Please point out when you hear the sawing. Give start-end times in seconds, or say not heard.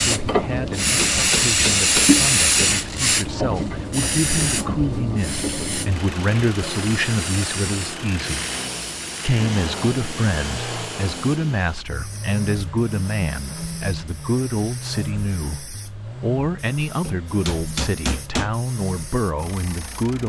not heard.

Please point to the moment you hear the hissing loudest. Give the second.
2 s.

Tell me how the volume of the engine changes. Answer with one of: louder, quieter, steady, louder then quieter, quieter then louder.
quieter.